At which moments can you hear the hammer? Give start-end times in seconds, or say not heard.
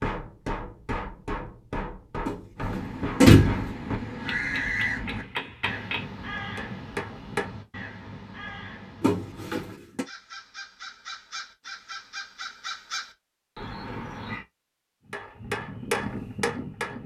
0.0-7.6, 15.1-17.0.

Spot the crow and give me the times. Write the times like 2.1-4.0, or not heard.
2.5-14.4.